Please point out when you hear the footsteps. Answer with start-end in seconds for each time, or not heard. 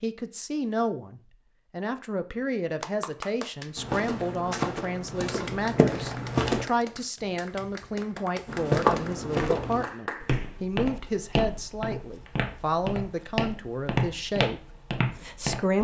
3.8-6.7, 8.4-15.7.